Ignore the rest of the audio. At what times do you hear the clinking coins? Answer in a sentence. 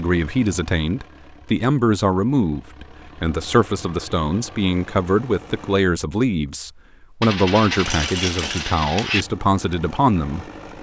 You can hear the clinking coins from 7.2 to 9.2 s.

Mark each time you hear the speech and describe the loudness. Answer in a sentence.
The speech can be heard from 0.0 to 10.4 s, at a steady volume.